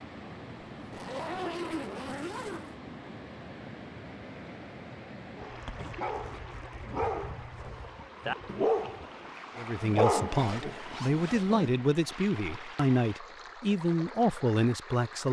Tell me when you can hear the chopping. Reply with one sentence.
The chopping can't be heard in this clip.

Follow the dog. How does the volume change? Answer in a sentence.
The loudness of the dog goes up, then down.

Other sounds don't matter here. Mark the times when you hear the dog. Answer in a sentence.
You can hear the dog from 5.3 to 11.7 s.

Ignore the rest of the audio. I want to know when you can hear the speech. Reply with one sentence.
The speech can be heard from 9.6 to 15.2 s.